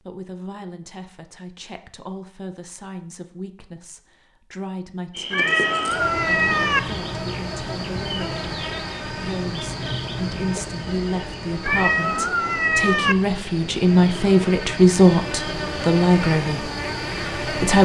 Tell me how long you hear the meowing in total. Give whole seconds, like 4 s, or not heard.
3 s.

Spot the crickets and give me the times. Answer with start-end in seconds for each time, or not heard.
5.1-17.7.